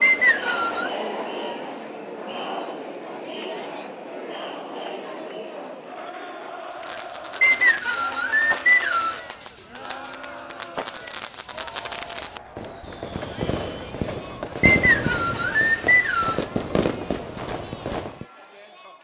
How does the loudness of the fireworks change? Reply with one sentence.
The volume of the fireworks goes up.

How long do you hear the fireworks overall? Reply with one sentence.
The fireworks can be heard for 12 seconds in total.